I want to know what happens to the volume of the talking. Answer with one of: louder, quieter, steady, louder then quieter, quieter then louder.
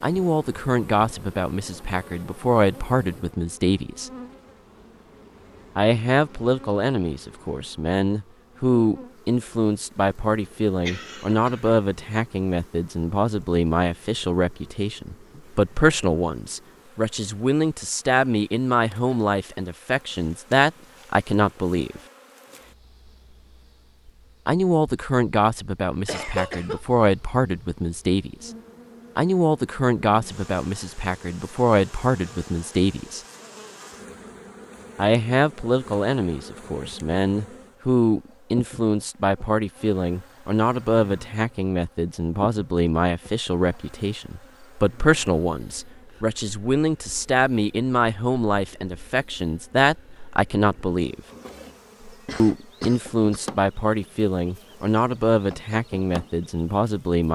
steady.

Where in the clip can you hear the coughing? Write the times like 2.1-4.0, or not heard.
10.8-11.8, 26.1-26.8, 52.0-53.5.